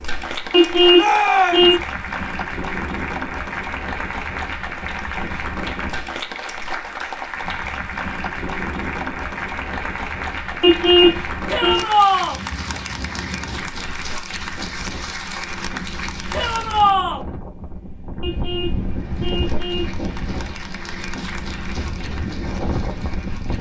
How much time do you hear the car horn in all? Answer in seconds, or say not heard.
4 s.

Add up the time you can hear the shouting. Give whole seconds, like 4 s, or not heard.
3 s.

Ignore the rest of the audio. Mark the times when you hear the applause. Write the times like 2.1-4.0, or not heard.
0.0-17.0, 18.9-23.5.